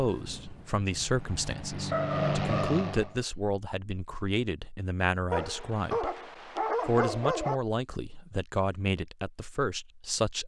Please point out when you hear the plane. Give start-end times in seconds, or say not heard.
0.0-3.1.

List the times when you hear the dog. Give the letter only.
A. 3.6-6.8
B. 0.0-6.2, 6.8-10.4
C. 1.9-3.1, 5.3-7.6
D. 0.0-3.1
C.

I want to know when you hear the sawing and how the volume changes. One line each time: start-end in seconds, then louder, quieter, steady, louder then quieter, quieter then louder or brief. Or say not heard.
not heard.